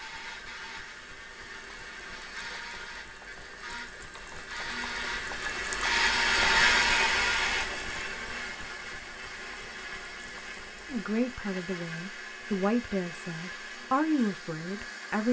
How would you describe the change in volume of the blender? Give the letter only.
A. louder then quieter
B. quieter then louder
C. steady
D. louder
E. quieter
A.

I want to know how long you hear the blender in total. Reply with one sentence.
You can hear the blender for 15 seconds altogether.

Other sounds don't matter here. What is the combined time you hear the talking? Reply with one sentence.
You can hear the talking for 4 seconds altogether.